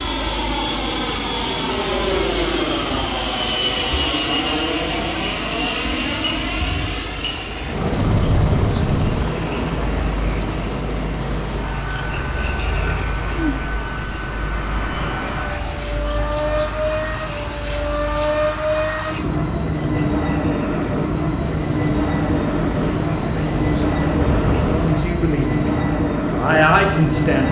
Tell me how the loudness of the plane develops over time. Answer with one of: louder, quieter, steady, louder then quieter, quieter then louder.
quieter then louder.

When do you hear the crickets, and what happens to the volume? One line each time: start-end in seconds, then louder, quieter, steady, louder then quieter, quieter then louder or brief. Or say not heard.
0.0-27.4 louder then quieter.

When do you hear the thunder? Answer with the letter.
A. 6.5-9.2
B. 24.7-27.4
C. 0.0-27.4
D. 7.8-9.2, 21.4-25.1
D.